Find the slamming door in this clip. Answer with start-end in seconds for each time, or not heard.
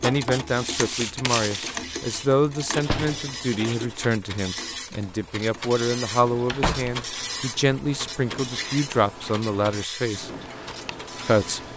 2.9-3.4, 6.5-7.0.